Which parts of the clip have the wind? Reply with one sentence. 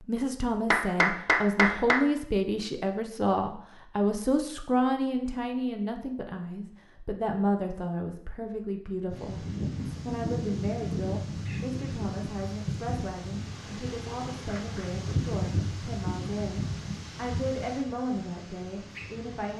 You can hear the wind from 9.1 to 19.5 s.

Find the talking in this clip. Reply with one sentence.
You can hear the talking from 0.0 to 19.5 s.